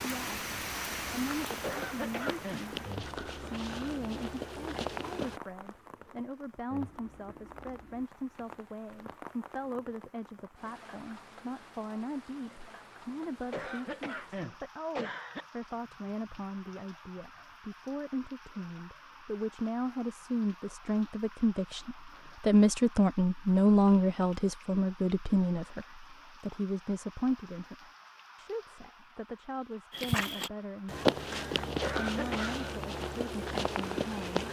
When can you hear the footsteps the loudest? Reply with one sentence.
The volume of the footsteps peaks at 31 seconds.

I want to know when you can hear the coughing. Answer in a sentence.
The coughing can be heard from 1.6 to 2.6 s, from 13.5 to 15.4 s and from 31.8 to 32.6 s.